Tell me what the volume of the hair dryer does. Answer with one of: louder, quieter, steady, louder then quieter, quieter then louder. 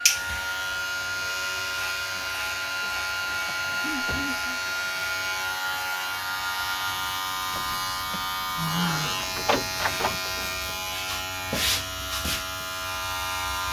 steady.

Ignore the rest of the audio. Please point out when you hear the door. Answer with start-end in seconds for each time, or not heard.
3.5-4.4, 7.5-10.2.